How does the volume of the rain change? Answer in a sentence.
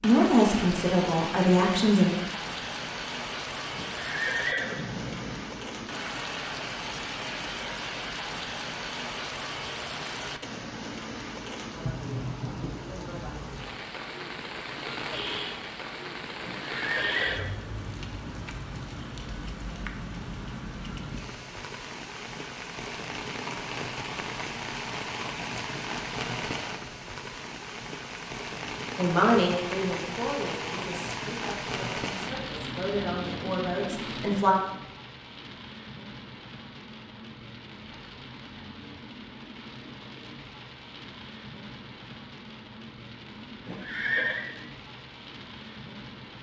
The loudness of the rain goes down.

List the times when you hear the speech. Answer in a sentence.
You can hear the speech from 0.0 to 2.1 s and from 28.9 to 34.5 s.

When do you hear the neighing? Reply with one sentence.
The neighing can be heard from 3.8 to 5.4 s, from 16.4 to 17.4 s and from 43.6 to 44.5 s.